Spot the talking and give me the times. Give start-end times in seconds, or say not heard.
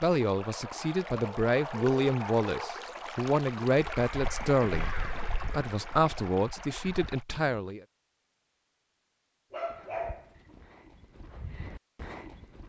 0.0-7.8.